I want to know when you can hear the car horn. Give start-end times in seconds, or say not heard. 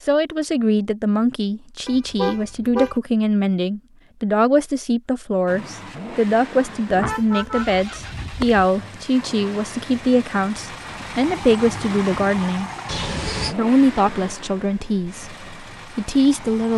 1.9-3.0, 6.8-8.7, 12.8-13.6.